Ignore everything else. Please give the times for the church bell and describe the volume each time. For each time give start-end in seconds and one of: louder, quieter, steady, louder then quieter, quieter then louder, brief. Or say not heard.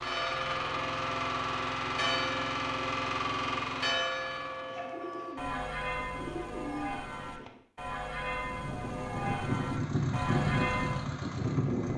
0.0-11.1 steady.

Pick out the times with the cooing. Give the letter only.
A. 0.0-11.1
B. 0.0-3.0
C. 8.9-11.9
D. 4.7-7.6
D.